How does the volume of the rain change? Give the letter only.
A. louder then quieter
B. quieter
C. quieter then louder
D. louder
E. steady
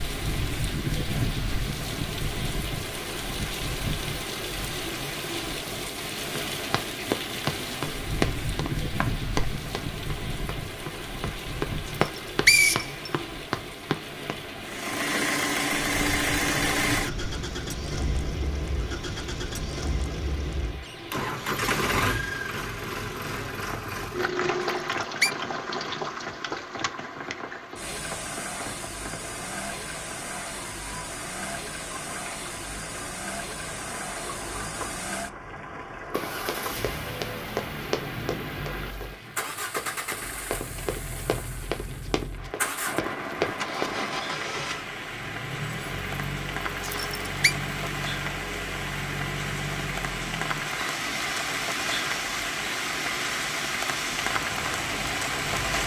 C.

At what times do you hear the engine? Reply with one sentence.
You can hear the engine from 14.6 to 55.8 s.